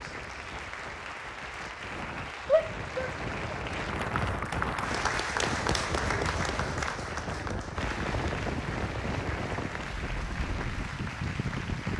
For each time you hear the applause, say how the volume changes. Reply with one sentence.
The applause can be heard from 0.0 to 11.9 s, getting louder then quieter.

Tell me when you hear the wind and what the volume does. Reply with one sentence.
You can hear the wind from 0.0 to 11.9 s, getting louder.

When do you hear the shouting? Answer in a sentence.
The shouting can be heard from 2.5 to 3.5 s.